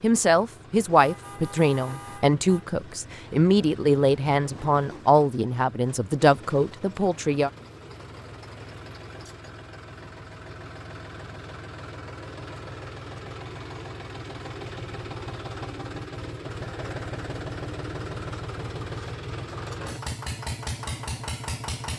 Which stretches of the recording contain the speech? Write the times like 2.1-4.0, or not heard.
0.0-7.5.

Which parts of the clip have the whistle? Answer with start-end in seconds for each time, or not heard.
not heard.